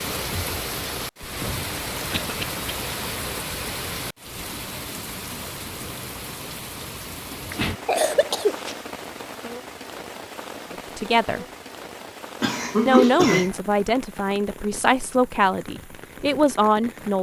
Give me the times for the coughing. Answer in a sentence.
The coughing can be heard from 2.1 to 2.6 s, from 7.5 to 8.8 s and from 12.4 to 13.5 s.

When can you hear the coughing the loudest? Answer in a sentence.
The loudest moment of the coughing is at 13 seconds.